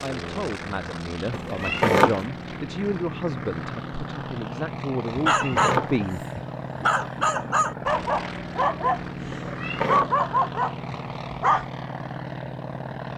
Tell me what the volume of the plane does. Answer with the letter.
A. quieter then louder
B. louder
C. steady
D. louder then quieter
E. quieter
C.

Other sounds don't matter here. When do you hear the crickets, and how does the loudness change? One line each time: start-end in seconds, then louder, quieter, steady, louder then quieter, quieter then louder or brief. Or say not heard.
not heard.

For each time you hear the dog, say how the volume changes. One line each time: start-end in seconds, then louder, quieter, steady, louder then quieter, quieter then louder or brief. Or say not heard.
5.0-11.7 steady.